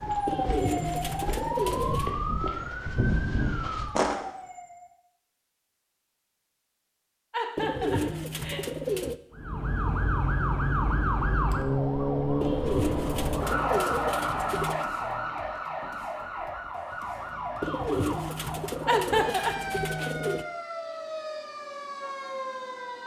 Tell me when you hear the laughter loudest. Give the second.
19 s.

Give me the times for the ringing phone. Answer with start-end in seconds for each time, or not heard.
not heard.